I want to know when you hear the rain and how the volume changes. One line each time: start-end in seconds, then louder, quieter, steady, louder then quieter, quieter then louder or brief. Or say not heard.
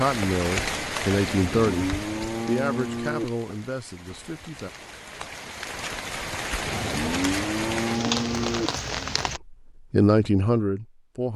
0.0-9.4 quieter then louder.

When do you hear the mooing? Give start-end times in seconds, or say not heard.
1.2-3.2, 6.7-8.7.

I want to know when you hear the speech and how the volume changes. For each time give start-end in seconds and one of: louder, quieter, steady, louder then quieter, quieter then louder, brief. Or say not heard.
0.0-4.7 quieter
9.5-11.3 brief.